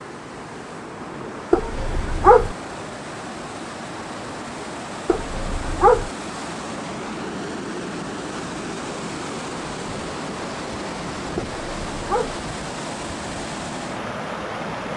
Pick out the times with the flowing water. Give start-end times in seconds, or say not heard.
0.0-14.9.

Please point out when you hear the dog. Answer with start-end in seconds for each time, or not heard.
1.5-2.5, 5.0-6.1, 11.3-12.4.